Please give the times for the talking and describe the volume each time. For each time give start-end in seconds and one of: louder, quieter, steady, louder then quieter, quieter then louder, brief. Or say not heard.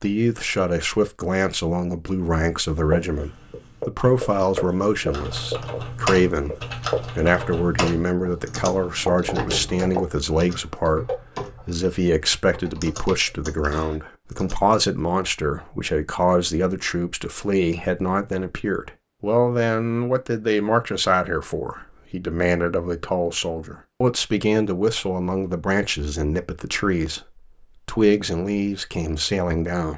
0.0-29.9 steady.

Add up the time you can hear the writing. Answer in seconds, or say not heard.
7 s.